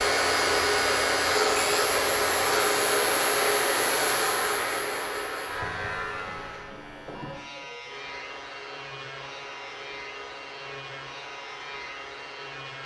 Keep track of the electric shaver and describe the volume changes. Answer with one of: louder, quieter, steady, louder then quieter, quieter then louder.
quieter.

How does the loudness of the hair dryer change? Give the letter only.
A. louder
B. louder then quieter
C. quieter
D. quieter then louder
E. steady
C.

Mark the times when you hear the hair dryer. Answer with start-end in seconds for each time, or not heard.
0.0-12.8.